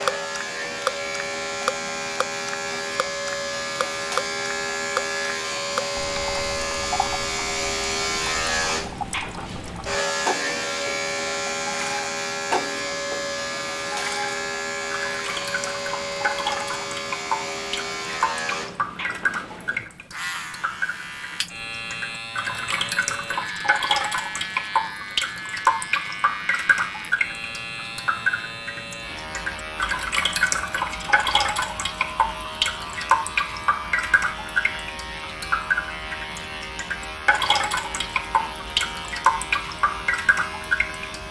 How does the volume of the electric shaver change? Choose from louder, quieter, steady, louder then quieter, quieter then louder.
quieter.